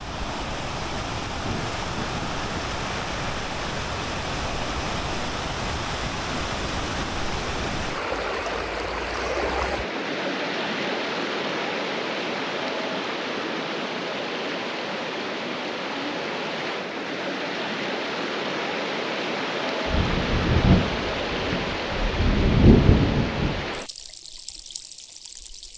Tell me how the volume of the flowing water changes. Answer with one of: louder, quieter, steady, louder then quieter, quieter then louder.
steady.